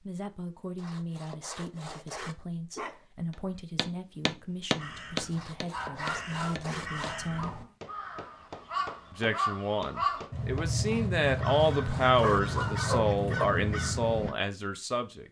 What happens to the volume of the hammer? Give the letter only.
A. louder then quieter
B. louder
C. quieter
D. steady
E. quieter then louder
C.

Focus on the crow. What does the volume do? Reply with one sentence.
The volume of the crow goes up.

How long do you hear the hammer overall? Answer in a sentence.
You can hear the hammer for 8 seconds altogether.